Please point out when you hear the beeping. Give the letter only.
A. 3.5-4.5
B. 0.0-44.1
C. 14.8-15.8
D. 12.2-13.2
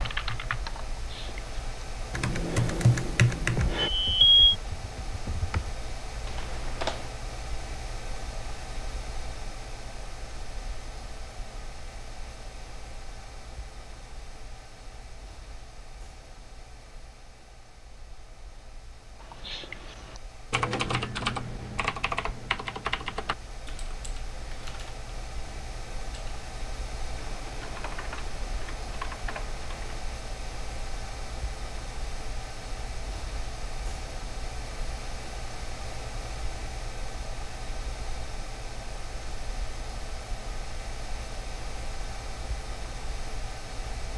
A.